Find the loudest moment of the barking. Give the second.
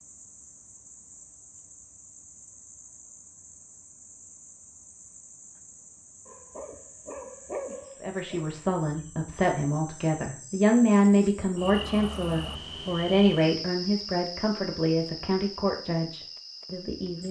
8 s.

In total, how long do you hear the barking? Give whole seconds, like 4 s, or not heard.
2 s.